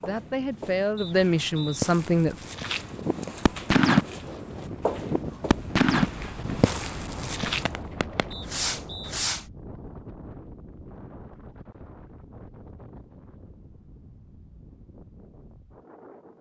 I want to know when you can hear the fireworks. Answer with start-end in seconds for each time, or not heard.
2.9-9.4.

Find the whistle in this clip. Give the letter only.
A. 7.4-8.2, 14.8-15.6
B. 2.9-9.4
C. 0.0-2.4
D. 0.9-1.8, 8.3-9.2
D.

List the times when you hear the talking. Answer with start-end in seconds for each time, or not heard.
0.0-2.4.